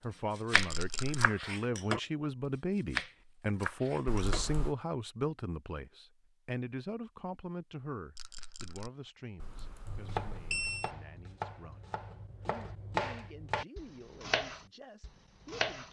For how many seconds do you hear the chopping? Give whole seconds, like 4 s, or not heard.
10 s.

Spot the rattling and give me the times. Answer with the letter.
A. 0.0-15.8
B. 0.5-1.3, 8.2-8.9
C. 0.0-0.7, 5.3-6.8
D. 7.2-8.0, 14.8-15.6
B.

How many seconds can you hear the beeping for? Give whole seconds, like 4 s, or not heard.
2 s.